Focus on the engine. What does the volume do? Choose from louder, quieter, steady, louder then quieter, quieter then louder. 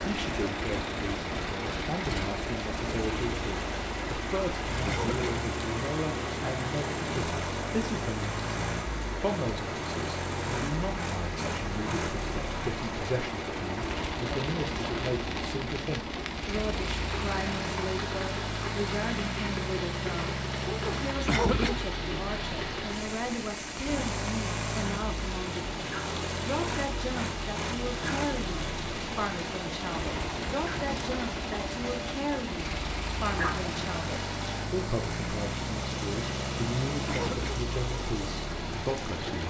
steady.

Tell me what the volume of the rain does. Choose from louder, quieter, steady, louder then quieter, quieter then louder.
steady.